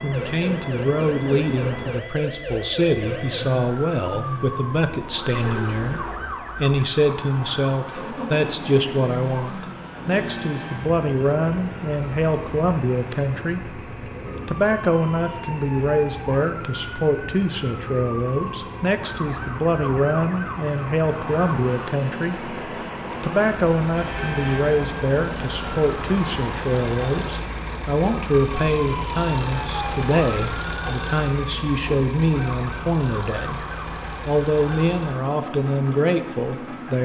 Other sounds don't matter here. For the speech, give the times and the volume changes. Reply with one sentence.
The speech can be heard from 0.0 to 13.8 s, at a steady volume; from 14.4 to 22.5 s, at a steady volume; and from 23.2 to 37.0 s, at a steady volume.